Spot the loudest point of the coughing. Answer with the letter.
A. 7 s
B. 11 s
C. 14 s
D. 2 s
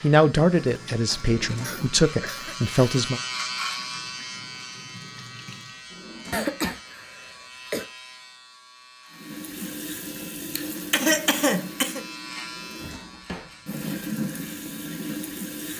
B.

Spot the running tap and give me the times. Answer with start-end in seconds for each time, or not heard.
0.0-5.9, 9.1-15.7.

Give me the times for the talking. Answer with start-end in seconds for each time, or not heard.
0.0-3.2.